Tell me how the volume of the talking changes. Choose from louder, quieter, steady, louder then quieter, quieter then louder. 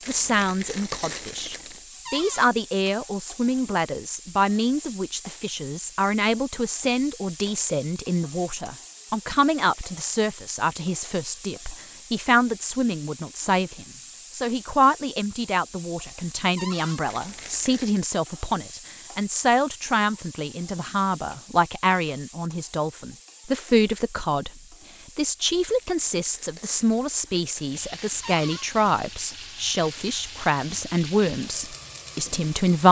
steady.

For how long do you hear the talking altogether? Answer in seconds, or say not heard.
32 s.